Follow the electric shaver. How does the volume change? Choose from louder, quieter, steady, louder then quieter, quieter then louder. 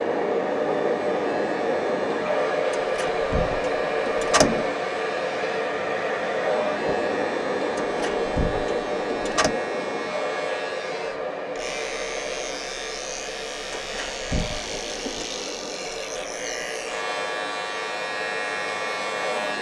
louder.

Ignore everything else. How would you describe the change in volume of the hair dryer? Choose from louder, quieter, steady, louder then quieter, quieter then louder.
quieter.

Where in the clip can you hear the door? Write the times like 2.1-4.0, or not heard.
2.7-4.7, 7.8-9.6, 13.7-15.3.